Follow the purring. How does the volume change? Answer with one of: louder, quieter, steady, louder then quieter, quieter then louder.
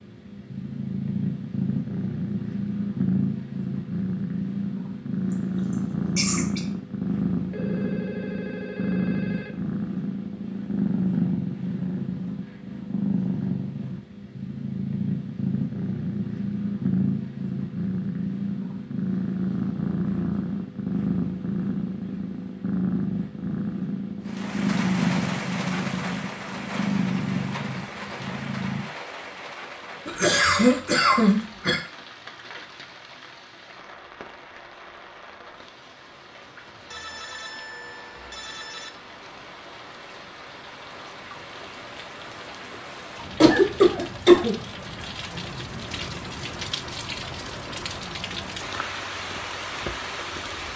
steady.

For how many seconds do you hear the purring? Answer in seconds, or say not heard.
29 s.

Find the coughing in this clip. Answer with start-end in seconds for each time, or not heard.
6.2-6.6, 30.1-31.8, 43.4-44.5.